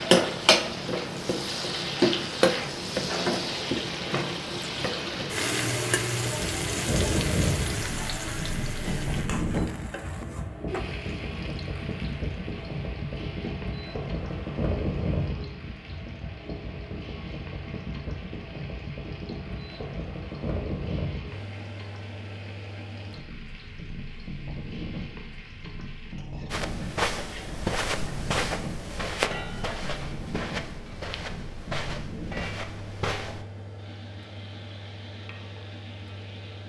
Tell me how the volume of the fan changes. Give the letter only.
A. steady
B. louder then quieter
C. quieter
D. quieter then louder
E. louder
C.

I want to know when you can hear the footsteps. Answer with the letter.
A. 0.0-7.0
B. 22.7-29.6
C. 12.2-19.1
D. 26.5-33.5
D.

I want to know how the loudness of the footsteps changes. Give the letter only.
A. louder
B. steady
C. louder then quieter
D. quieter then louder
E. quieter
E.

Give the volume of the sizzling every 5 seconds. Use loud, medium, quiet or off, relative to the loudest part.
loud, medium, quiet, quiet, quiet, quiet, quiet, quiet.